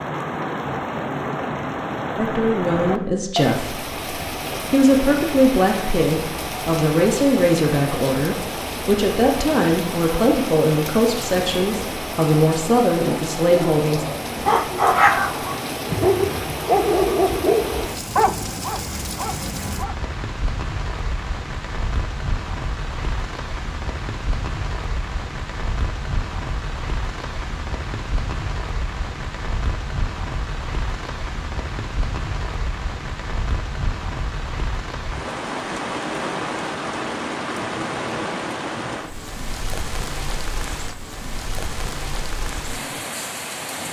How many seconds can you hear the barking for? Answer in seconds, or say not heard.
6 s.